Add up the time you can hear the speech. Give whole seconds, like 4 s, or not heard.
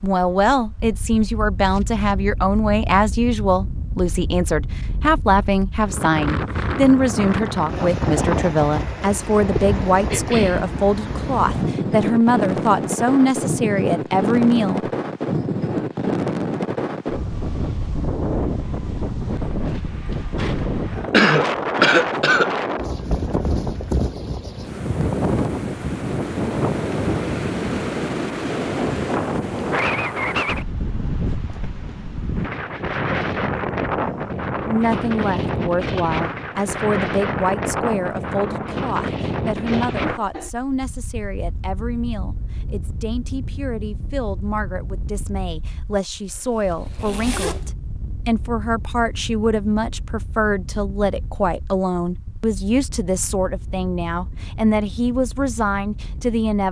37 s.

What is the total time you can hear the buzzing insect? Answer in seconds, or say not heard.
not heard.